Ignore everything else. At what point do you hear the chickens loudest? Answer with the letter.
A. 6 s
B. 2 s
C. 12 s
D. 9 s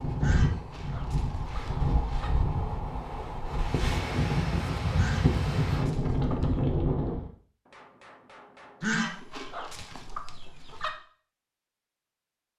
D.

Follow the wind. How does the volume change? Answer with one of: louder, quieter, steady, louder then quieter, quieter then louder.
louder.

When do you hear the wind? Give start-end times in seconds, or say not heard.
0.0-7.3.